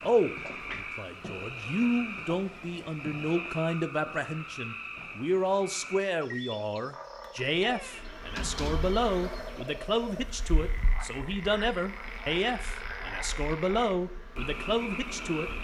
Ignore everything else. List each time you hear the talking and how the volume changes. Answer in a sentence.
The talking can be heard from 0.0 to 15.5 s, at a steady volume.